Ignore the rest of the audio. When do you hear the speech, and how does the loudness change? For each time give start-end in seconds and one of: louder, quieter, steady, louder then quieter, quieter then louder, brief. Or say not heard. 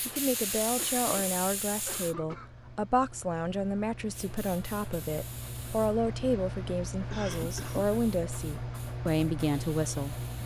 0.1-10.4 steady.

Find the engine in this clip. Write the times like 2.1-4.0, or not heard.
0.0-10.4.